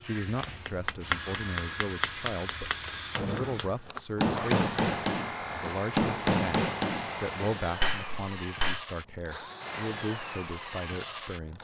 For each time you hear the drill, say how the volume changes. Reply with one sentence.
You can hear the drill from 0.0 to 11.5 s, at a steady volume.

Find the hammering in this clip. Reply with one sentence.
You can hear the hammering from 0.2 to 8.8 s.